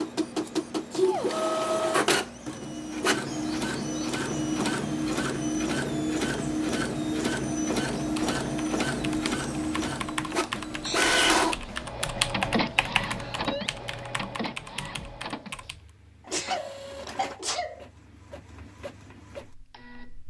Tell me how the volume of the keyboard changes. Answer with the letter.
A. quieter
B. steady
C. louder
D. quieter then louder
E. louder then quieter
E.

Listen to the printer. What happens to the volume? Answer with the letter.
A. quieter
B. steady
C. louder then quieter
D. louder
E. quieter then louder
A.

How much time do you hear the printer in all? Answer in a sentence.
You can hear the printer for 20 seconds altogether.